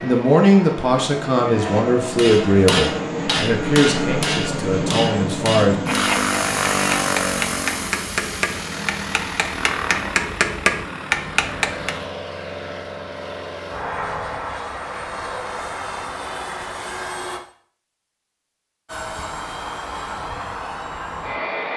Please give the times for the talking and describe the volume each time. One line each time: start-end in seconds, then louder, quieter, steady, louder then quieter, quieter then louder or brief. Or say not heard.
0.0-5.8 quieter.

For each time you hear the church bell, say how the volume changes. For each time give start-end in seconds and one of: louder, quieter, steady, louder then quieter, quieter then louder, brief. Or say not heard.
not heard.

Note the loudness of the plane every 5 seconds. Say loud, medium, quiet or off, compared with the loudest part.
loud, loud, medium, medium, medium.